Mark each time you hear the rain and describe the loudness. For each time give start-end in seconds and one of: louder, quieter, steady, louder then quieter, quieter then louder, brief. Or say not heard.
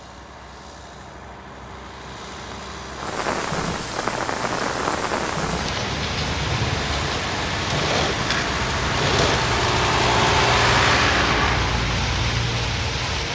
3.0-13.3 steady.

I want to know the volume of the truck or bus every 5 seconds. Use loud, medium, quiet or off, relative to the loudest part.
quiet, medium, loud.